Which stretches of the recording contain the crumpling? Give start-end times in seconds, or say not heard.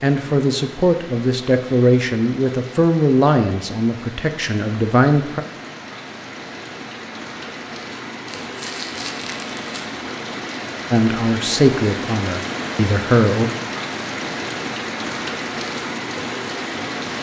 8.2-9.9.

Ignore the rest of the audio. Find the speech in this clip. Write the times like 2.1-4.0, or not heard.
0.0-5.4, 10.9-13.5.